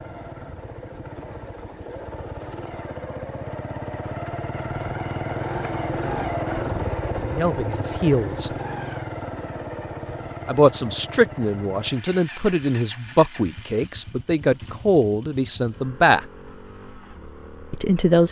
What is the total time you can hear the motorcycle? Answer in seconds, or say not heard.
18 s.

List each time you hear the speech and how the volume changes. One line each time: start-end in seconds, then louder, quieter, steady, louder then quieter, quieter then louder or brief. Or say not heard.
7.2-8.5 brief
10.4-16.2 steady
17.7-18.2 brief.